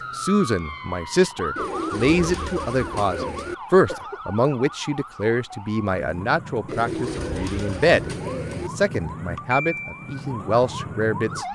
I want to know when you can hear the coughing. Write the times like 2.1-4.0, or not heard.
3.1-4.3.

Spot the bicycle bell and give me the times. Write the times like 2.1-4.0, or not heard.
not heard.